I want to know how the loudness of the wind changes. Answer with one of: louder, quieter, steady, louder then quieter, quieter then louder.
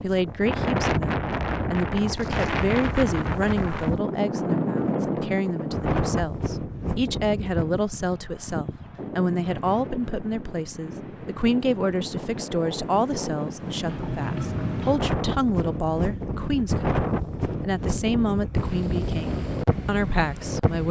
quieter then louder.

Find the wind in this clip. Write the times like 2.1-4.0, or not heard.
0.0-20.8.